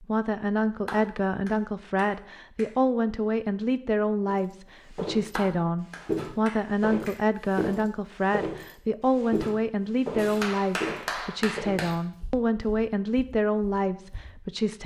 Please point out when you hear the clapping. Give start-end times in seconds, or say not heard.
0.8-2.6, 5.3-7.2, 10.2-11.9.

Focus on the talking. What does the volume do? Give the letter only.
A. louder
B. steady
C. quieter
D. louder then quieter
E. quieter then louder
B.